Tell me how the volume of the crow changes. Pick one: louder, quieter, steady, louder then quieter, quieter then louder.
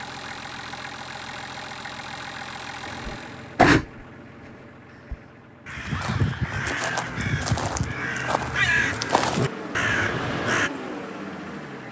quieter then louder.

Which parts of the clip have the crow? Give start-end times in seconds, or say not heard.
3.0-10.7.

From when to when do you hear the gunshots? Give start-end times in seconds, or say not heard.
not heard.